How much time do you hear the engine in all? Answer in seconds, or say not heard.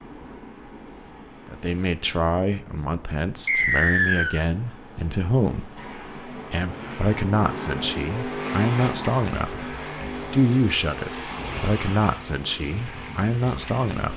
8 s.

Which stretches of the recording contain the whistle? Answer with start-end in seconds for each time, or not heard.
3.5-4.4.